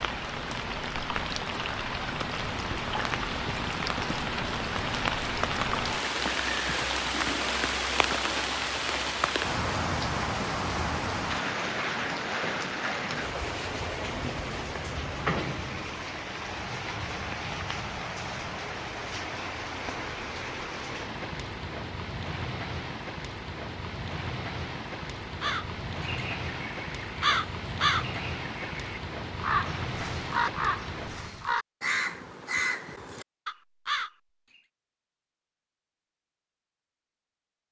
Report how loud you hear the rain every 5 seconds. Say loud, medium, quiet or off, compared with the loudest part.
loud, loud, loud, medium, medium, medium, medium, off.